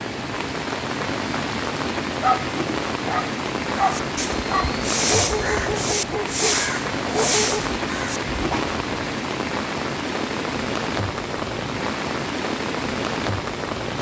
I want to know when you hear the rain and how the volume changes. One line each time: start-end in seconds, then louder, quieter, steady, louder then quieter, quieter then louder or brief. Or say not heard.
0.0-13.9 steady.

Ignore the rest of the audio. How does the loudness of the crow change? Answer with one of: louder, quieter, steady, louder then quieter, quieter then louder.
quieter.